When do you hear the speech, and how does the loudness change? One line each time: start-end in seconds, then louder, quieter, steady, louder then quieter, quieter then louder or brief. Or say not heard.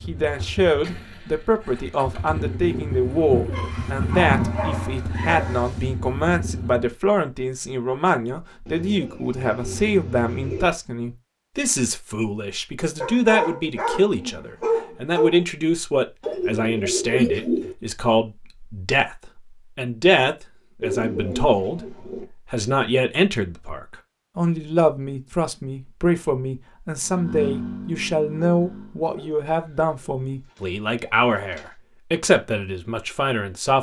0.1-33.7 steady.